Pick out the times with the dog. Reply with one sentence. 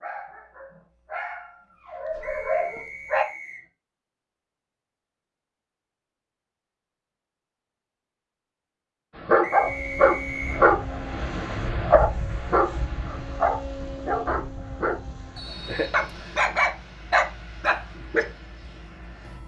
You can hear the dog from 0.0 to 3.2 s and from 9.2 to 18.2 s.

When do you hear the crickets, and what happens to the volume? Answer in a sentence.
The crickets can't be heard in this clip.